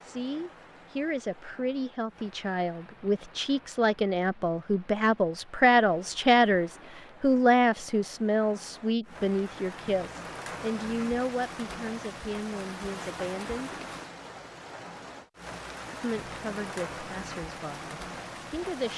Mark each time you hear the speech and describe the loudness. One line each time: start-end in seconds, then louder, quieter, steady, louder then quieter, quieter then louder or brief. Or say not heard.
0.0-13.8 louder then quieter
15.9-18.9 brief.